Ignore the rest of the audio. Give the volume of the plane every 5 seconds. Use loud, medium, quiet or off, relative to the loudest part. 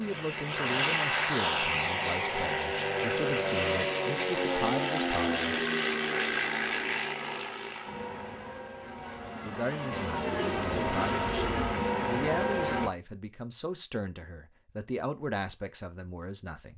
loud, loud, loud, off.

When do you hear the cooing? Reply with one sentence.
You can hear the cooing from 9.9 to 12.4 s.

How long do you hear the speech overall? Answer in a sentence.
You can hear the speech for 13 seconds altogether.